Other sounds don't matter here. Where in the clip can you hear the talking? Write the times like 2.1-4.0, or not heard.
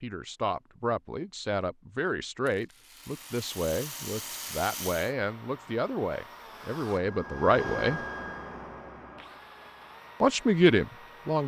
0.0-8.0, 10.2-11.4.